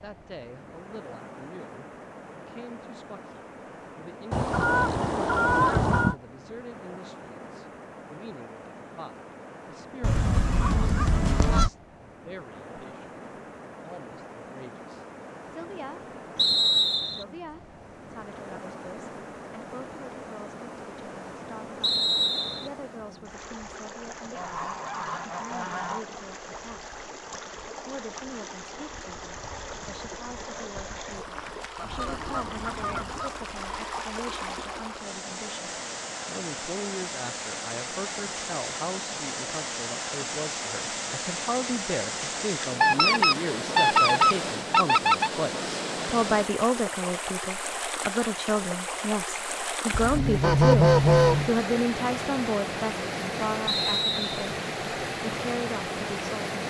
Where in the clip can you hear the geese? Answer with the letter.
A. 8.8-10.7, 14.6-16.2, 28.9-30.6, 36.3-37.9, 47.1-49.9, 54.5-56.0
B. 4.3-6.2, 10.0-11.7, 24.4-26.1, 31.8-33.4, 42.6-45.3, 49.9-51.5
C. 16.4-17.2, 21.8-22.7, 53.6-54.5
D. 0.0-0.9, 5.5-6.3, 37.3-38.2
B.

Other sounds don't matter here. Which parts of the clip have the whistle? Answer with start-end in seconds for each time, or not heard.
16.4-17.2, 21.8-22.7, 53.6-54.5.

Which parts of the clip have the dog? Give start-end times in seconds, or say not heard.
not heard.